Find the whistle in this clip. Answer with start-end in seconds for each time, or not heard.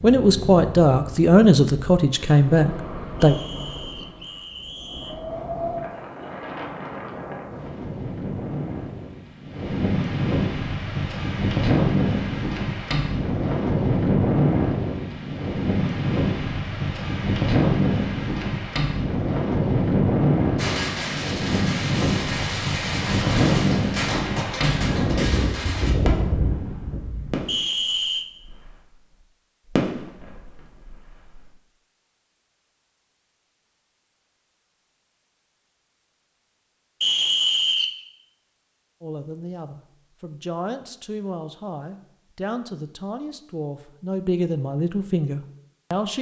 3.1-5.2, 27.4-28.2, 37.0-38.0.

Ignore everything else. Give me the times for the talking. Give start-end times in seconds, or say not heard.
0.0-3.4, 39.0-46.1.